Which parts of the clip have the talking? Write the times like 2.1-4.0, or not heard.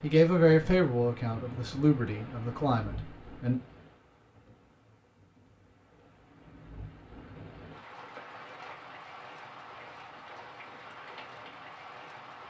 0.0-3.5.